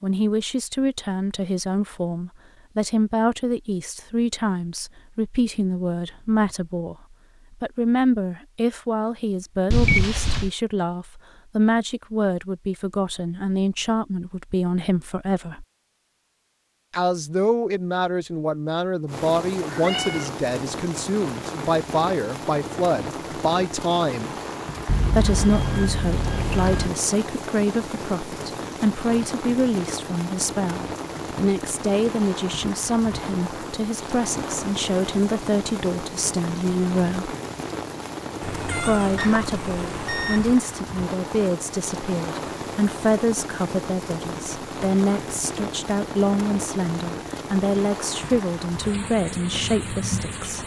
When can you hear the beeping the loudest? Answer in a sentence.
The volume of the beeping peaks at 10 seconds.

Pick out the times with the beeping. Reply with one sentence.
You can hear the beeping from 9.7 to 10.5 s, from 24.9 to 26.9 s and from 39.1 to 40.5 s.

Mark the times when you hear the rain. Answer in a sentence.
The rain can be heard from 19.1 to 50.6 s.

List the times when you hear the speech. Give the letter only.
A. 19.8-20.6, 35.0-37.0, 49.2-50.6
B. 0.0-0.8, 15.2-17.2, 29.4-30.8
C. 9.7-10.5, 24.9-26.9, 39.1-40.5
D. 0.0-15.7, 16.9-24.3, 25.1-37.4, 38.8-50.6
D.